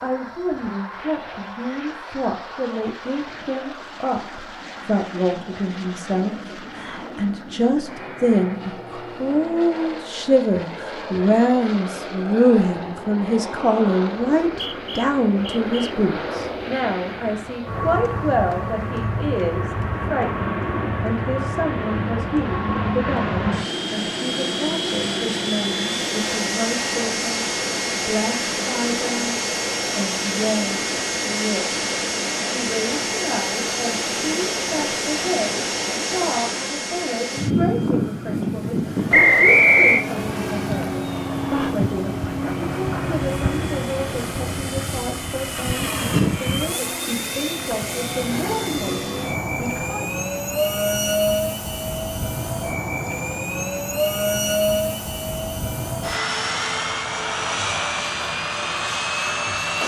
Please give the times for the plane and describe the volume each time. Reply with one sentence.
You can hear the plane from 0.0 to 59.8 s, getting louder.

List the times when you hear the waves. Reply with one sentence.
The waves can't be heard in this clip.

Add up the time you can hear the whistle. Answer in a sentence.
You can hear the whistle for 3 seconds altogether.